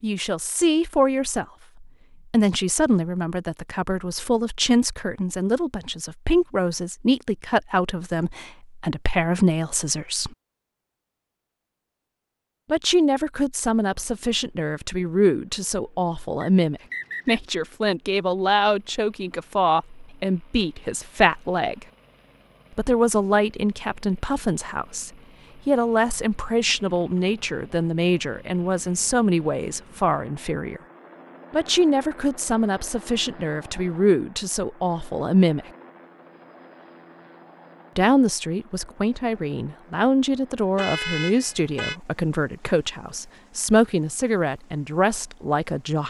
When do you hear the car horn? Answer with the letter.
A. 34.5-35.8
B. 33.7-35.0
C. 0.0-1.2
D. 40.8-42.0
D.